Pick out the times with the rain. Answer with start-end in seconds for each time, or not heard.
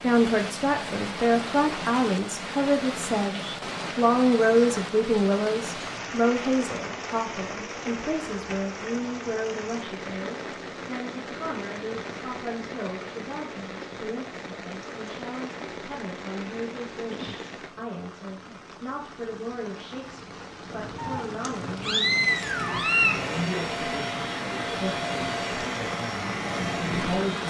0.0-27.4.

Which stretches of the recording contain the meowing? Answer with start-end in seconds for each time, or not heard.
20.9-23.1.